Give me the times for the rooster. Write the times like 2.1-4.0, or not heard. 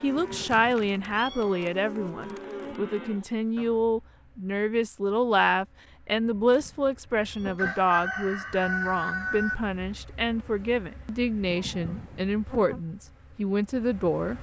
7.5-9.6.